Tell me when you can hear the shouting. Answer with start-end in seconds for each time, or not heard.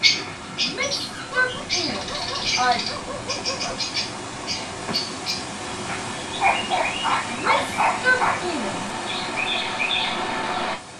0.6-2.9, 7.3-8.9.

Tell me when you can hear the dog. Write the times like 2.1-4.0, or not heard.
1.2-3.8, 5.8-8.5.